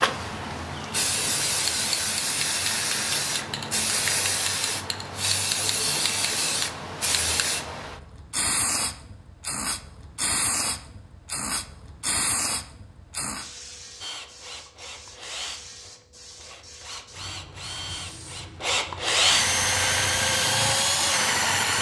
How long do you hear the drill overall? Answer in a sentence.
The drill can be heard for 8 seconds in total.